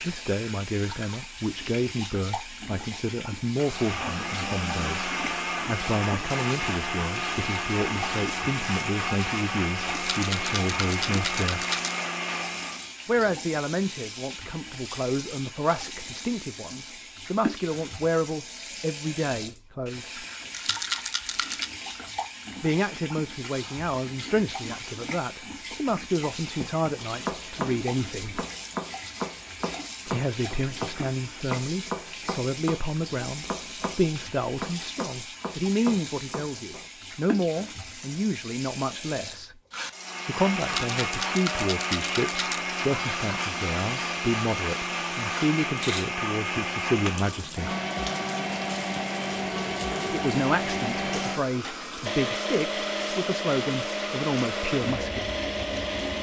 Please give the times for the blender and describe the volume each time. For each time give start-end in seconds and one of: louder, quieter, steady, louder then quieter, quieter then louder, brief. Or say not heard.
3.5-12.9 steady
39.9-56.1 steady.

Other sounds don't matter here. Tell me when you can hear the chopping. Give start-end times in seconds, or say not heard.
26.6-36.9.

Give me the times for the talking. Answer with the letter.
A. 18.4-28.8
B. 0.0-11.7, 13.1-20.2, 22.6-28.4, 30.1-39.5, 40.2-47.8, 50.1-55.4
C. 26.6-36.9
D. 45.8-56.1
B.